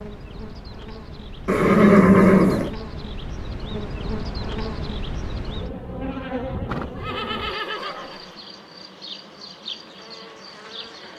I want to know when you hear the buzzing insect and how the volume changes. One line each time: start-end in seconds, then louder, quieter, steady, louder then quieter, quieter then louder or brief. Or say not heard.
0.0-11.1 louder then quieter.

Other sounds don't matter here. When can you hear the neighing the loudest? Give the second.
2 s.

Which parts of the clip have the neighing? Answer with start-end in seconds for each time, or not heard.
1.4-2.8, 6.7-8.3.